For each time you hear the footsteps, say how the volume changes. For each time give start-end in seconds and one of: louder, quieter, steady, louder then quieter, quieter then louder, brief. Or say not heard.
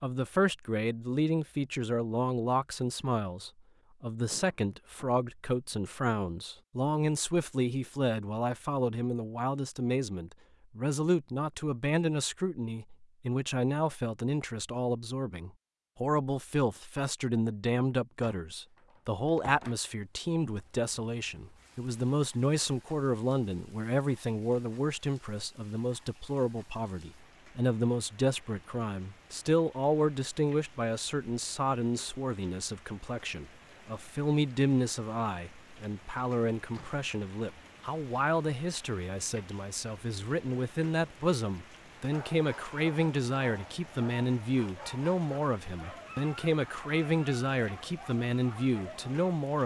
not heard.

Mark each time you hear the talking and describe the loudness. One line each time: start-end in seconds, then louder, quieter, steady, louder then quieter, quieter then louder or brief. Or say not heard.
0.0-49.6 steady.